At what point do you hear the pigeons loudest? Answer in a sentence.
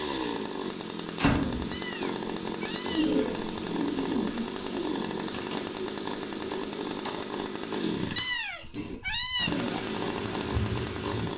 The volume of the pigeons peaks at 3 seconds.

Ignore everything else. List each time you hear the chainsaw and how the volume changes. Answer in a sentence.
The chainsaw can be heard from 0.0 to 11.3 s, at a steady volume.